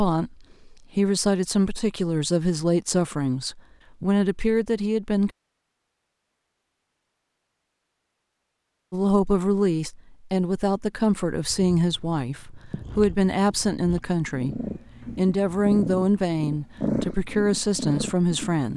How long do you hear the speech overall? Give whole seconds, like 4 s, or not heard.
15 s.